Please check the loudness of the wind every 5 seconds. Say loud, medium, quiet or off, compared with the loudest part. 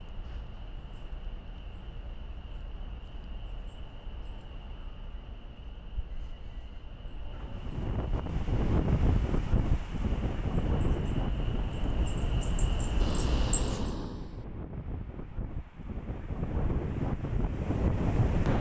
off, loud, loud, loud.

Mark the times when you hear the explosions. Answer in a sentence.
You can hear the explosions from 13.0 to 14.4 s.